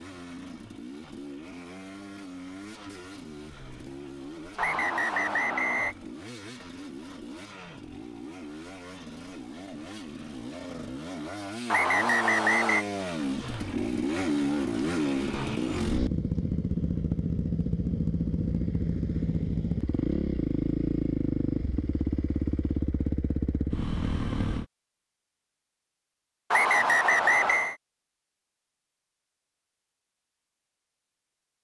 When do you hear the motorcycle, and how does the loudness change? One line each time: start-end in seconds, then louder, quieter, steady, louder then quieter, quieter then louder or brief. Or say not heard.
0.0-24.6 louder.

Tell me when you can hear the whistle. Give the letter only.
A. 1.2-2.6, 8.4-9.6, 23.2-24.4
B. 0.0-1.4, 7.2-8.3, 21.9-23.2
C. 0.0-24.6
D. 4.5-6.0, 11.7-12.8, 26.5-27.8
D.